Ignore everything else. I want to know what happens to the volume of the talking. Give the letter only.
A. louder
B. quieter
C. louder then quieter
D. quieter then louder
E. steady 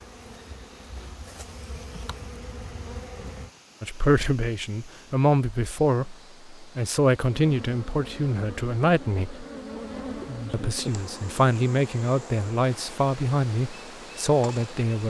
E.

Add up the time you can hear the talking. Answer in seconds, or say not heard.
10 s.